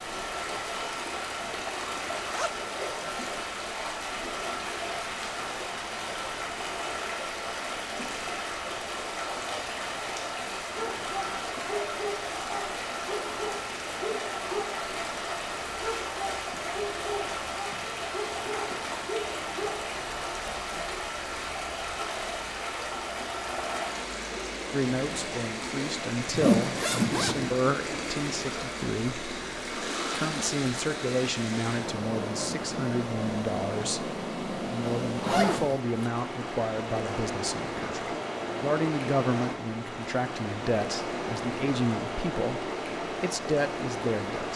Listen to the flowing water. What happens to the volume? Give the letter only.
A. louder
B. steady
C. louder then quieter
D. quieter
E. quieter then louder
B.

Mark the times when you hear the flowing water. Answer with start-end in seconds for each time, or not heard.
0.0-44.5.